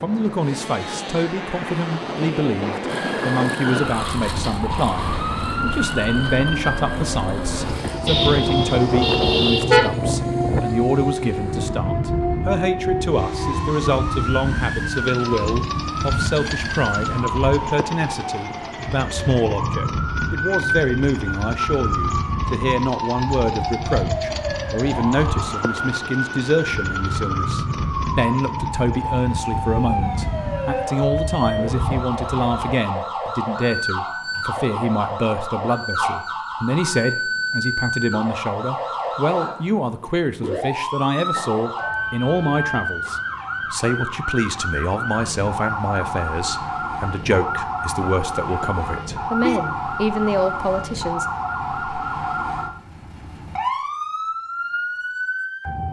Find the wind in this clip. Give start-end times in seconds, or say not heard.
0.0-32.8.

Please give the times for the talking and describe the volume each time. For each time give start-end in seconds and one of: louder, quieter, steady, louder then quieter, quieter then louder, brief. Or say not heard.
0.0-51.2 steady.